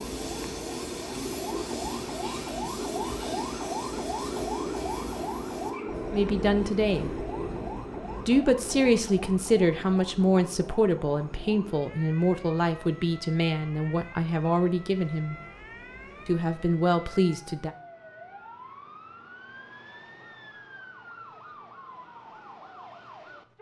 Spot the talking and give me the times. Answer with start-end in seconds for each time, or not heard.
6.1-7.2, 8.2-15.3, 16.2-17.7.